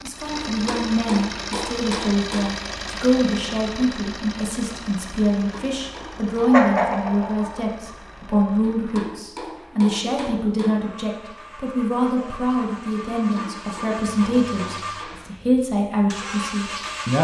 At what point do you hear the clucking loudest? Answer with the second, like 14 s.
7 s.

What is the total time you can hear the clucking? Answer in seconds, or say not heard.
2 s.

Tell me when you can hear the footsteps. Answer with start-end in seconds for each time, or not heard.
not heard.